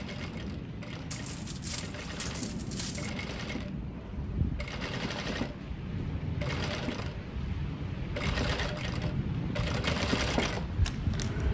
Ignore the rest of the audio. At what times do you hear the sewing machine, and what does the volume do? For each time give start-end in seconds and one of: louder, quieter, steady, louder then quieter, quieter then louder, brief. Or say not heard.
0.0-11.4 louder.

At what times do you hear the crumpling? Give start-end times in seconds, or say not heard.
1.1-3.1.